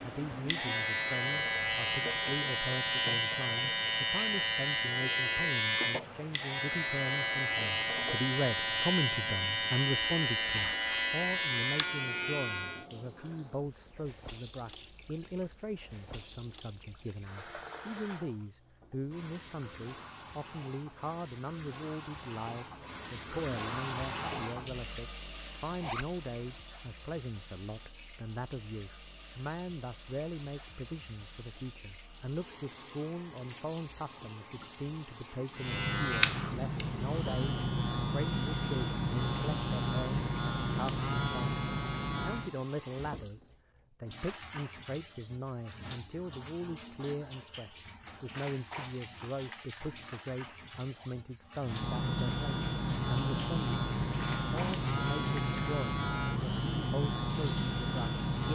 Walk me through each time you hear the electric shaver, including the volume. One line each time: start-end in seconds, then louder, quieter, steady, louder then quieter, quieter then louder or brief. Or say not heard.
0.0-12.8 steady
35.5-42.5 steady
51.6-58.4 steady.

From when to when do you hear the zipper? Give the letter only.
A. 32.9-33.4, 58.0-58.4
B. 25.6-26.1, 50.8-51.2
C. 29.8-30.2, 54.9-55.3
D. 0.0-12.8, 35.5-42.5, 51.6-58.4
B.